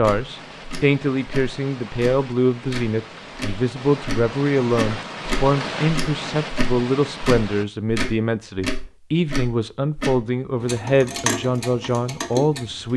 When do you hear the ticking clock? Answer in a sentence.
The ticking clock can be heard from 0.0 to 12.9 s.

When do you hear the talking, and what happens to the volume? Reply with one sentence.
The talking can be heard from 0.0 to 12.9 s, at a steady volume.